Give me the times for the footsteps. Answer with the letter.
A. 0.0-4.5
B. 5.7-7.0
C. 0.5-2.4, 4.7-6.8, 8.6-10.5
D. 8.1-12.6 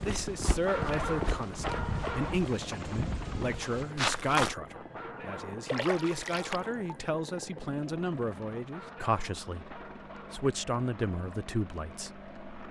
A.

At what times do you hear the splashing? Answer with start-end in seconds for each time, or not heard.
5.7-7.0.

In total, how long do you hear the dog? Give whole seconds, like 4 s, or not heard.
6 s.